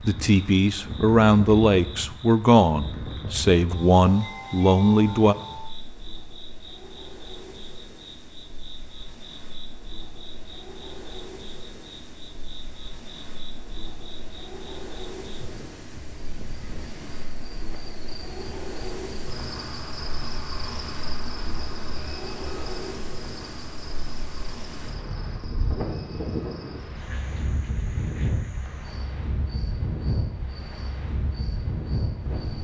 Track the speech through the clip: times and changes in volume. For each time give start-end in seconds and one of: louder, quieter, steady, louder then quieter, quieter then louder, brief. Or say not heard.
0.0-5.3 steady.